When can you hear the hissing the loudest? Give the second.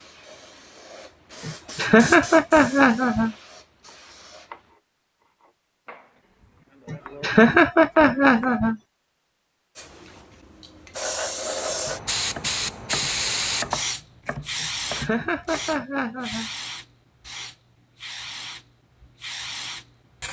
13 s.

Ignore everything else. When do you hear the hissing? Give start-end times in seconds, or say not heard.
0.0-4.7, 9.8-20.2.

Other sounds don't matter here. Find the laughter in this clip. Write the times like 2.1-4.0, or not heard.
1.4-3.4, 6.8-8.8, 14.6-16.5.